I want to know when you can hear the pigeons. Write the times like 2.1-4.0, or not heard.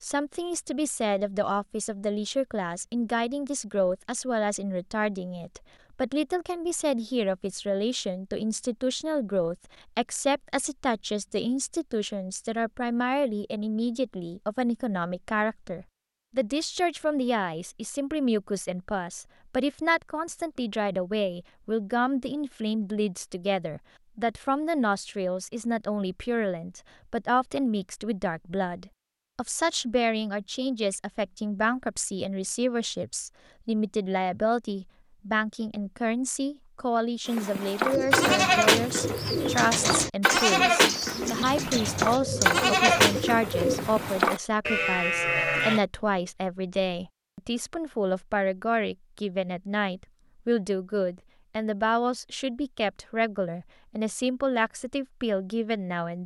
37.9-44.2.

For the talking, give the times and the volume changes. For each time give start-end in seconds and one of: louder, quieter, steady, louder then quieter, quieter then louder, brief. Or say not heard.
0.0-56.2 steady.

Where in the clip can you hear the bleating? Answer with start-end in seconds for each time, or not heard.
37.2-45.8.